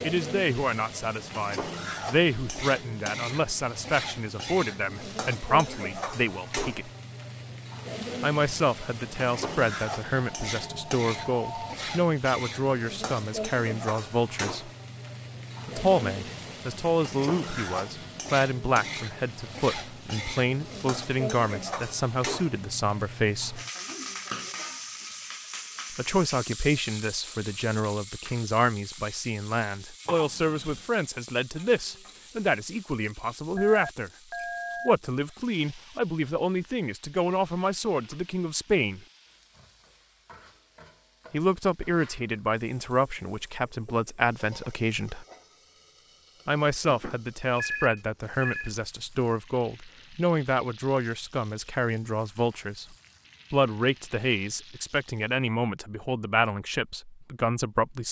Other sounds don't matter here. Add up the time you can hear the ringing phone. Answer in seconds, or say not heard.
5 s.